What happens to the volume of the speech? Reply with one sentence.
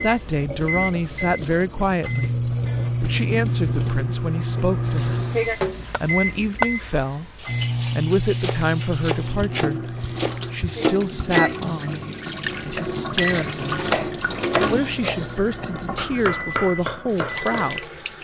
The volume of the speech stays about the same.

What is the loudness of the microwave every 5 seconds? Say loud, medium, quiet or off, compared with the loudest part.
loud, loud, medium, medium.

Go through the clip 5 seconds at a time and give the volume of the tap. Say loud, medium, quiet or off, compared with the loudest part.
medium, medium, loud, medium.